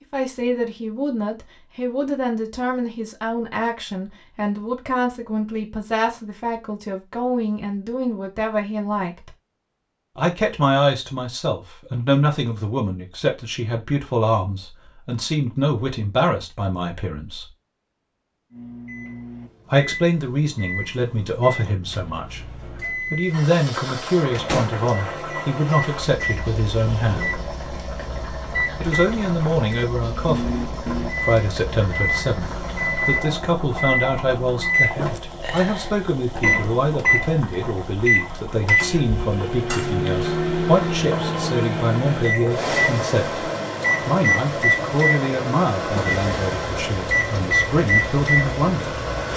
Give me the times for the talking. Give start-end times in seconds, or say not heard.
0.1-9.3, 10.2-17.5, 19.7-27.4, 28.8-49.0.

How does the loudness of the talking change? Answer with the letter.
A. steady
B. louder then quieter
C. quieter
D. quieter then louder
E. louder
A.